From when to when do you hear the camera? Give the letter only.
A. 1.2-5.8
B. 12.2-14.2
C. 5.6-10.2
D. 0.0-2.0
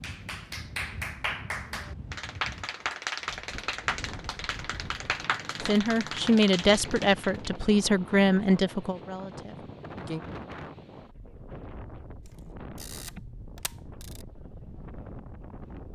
B.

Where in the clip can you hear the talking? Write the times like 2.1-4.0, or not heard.
5.6-10.2.